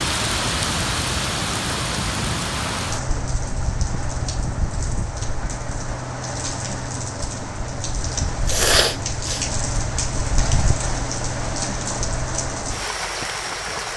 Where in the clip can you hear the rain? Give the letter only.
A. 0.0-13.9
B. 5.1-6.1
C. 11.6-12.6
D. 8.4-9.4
A.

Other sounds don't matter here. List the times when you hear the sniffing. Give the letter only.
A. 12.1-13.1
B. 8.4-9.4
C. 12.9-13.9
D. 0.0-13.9
B.